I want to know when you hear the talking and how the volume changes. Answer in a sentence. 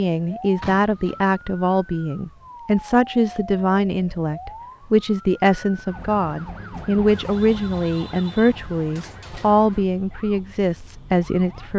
The talking can be heard from 0.0 to 11.7 s, at a steady volume.